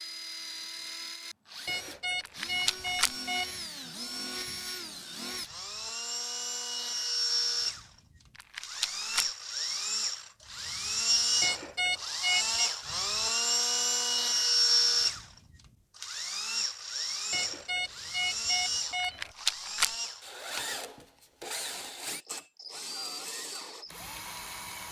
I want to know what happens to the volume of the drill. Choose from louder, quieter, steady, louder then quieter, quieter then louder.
louder then quieter.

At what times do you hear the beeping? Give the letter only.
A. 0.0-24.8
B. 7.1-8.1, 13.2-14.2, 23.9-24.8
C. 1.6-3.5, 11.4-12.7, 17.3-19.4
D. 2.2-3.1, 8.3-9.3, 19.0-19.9
C.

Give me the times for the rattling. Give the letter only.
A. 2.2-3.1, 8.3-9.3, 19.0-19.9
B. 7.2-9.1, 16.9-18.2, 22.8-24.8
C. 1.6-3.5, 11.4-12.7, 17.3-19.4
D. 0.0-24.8
A.